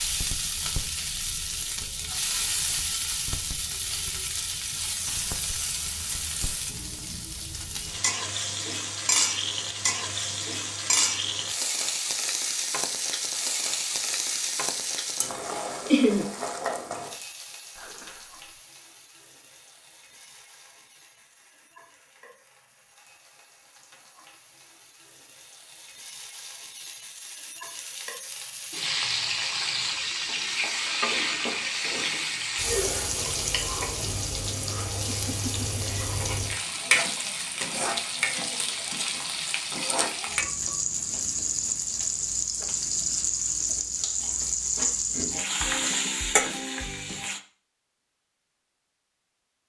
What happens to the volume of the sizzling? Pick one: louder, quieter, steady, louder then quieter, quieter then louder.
quieter then louder.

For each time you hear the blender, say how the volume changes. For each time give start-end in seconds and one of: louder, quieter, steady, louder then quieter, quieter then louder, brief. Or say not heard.
not heard.